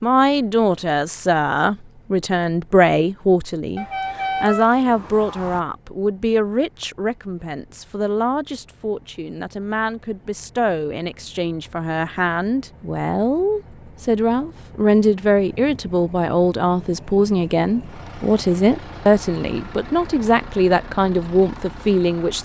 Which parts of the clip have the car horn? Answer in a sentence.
You can hear the car horn from 3.8 to 5.6 s.